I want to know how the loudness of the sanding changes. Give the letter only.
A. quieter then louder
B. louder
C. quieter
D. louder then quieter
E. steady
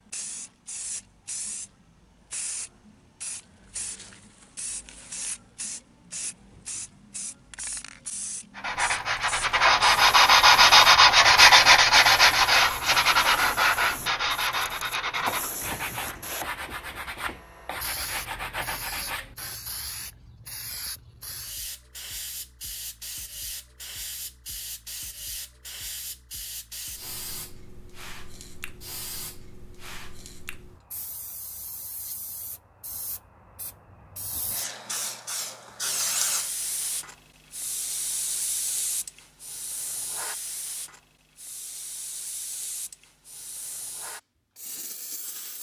C.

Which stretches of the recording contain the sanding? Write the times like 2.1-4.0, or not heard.
8.6-19.6.